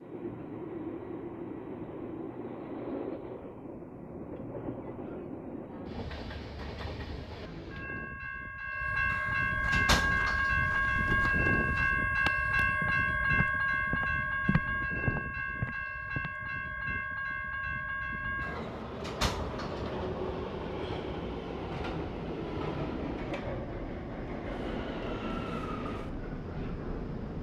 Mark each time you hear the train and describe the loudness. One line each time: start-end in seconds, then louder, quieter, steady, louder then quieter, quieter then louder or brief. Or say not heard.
0.0-27.3 louder then quieter.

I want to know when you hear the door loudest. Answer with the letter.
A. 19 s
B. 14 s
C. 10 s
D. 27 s
C.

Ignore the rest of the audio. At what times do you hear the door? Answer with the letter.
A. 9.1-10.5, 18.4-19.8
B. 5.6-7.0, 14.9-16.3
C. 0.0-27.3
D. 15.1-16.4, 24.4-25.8
A.